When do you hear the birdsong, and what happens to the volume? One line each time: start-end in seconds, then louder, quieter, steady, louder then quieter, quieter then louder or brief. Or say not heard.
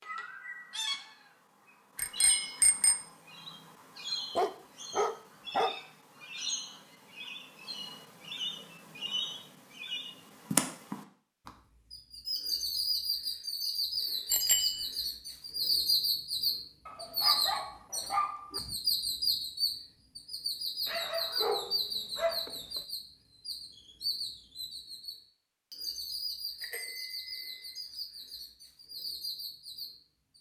0.0-30.3 louder then quieter.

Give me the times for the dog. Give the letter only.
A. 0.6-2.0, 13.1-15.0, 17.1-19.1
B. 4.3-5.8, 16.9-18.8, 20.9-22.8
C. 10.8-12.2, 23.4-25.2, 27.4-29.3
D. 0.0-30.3
B.